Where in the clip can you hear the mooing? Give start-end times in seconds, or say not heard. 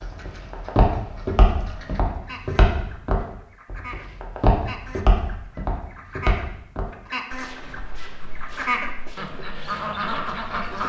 not heard.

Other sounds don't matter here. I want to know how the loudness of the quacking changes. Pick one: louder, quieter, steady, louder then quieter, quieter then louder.
louder.